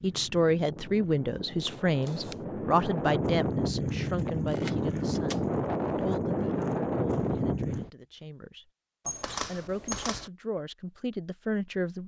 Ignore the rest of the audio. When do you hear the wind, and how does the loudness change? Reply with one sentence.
The wind can be heard from 0.0 to 7.9 s, getting louder.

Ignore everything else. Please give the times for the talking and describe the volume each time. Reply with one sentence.
You can hear the talking from 0.0 to 12.0 s, getting quieter then louder.